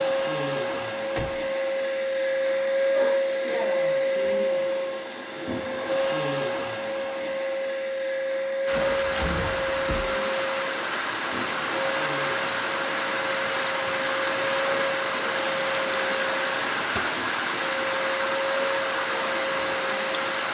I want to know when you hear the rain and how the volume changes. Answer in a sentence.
The rain can be heard from 8.7 to 20.4 s, at a steady volume.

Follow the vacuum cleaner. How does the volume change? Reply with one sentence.
The volume of the vacuum cleaner goes down.